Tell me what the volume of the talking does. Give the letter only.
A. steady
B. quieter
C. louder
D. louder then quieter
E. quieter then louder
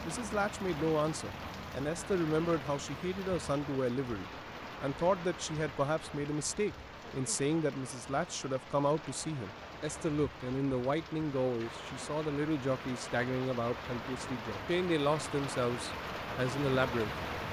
A.